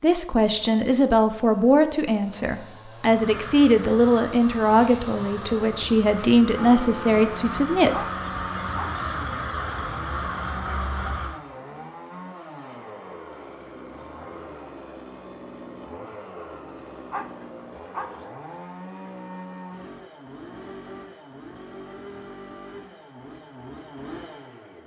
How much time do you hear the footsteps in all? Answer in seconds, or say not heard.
not heard.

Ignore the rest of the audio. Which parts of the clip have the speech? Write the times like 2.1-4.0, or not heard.
0.0-8.1.